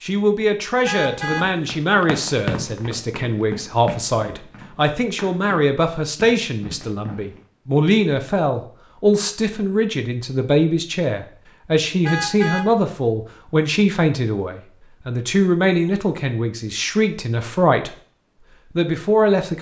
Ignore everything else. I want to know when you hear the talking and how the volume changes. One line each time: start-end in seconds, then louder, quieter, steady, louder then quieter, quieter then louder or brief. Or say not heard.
0.0-17.9 steady
18.8-19.5 brief.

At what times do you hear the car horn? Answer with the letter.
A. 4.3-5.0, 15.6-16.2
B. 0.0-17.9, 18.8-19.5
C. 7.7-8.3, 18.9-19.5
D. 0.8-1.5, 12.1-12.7
D.